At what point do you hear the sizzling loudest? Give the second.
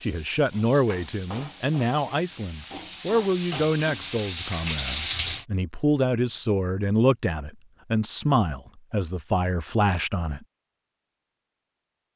5 s.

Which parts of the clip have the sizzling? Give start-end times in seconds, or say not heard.
0.0-5.5.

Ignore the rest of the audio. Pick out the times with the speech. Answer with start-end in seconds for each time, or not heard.
0.0-10.4.